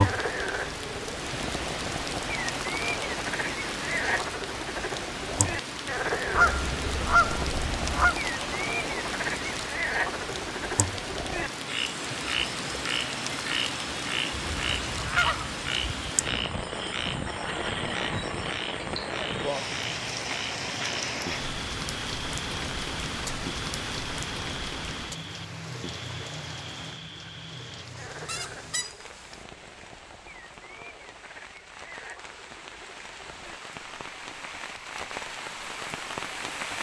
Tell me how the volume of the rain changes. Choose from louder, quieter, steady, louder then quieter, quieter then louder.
quieter.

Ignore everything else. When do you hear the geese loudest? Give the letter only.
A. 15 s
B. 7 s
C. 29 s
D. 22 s
B.